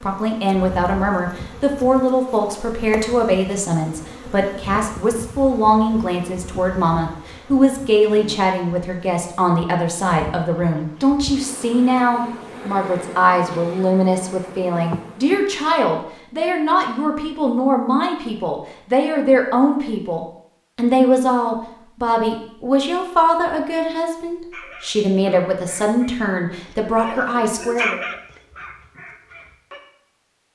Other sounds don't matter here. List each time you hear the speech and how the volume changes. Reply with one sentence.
You can hear the speech from 0.0 to 28.0 s, at a steady volume.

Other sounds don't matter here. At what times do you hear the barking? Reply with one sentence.
The barking can be heard from 24.5 to 29.8 s.